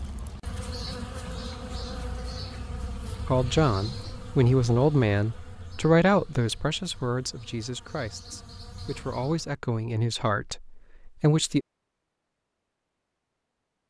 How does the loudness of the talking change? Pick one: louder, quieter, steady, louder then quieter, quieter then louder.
quieter.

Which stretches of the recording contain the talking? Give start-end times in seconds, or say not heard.
3.2-11.6.